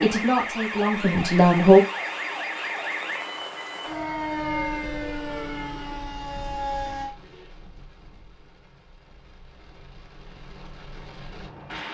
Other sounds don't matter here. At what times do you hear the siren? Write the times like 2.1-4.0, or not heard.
0.0-7.1.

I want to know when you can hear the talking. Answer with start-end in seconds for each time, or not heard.
0.0-1.8.